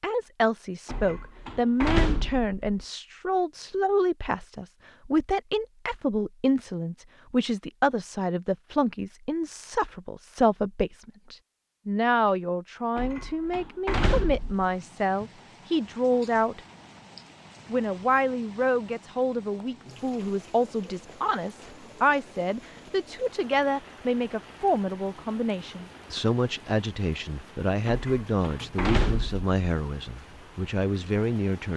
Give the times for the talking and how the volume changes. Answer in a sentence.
The talking can be heard from 0.0 to 16.6 s, at a steady volume; and from 17.7 to 31.7 s, at a steady volume.